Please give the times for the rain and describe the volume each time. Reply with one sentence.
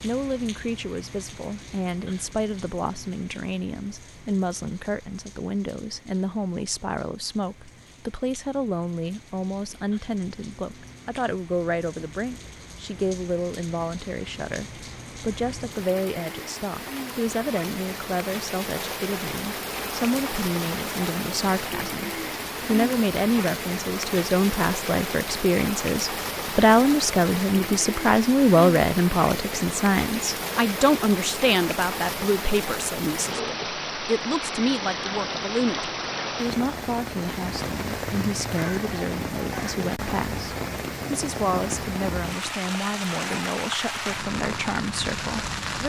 You can hear the rain from 0.0 to 45.8 s, getting louder.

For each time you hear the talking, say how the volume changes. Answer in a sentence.
You can hear the talking from 0.0 to 45.8 s, getting louder then quieter.